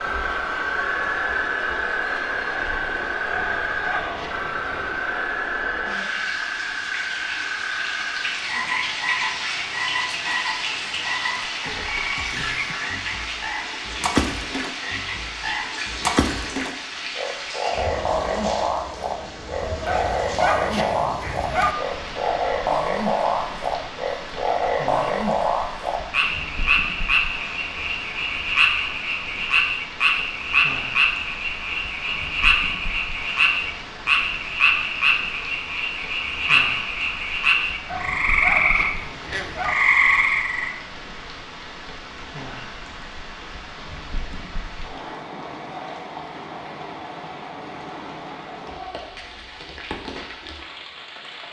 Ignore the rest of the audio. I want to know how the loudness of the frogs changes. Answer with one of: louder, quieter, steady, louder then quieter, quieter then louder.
louder.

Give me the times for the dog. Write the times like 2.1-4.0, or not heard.
3.3-5.1, 19.9-21.8, 37.9-39.8.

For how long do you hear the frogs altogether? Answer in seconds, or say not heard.
41 s.